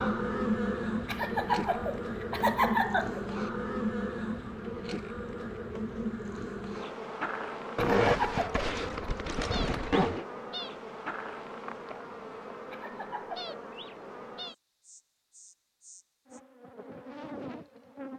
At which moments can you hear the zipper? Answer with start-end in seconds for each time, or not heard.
7.8-10.2.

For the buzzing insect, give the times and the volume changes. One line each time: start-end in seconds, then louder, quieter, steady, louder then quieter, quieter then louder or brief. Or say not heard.
0.0-18.1 quieter.